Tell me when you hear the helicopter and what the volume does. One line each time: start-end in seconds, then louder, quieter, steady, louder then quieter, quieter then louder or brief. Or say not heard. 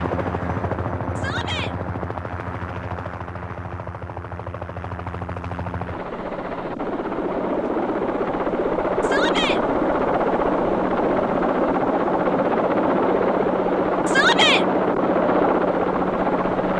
0.0-16.7 louder.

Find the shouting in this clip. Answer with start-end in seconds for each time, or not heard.
1.1-1.8, 9.0-9.6, 14.1-14.7.